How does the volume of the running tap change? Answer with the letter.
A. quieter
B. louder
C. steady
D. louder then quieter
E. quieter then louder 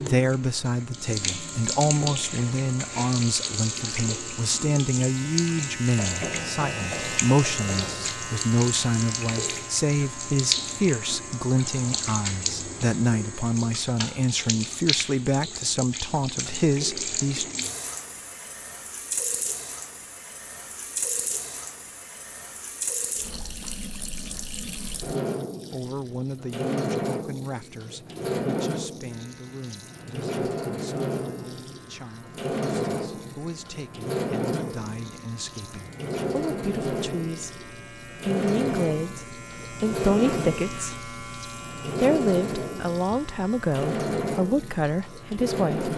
C.